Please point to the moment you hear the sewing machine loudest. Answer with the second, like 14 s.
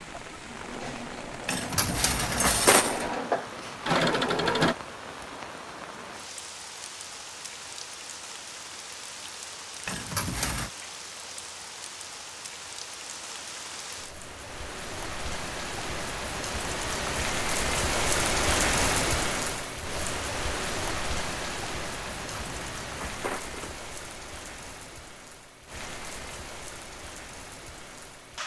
4 s.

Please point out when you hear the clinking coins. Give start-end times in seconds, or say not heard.
1.4-3.0, 9.8-10.7, 22.1-23.8.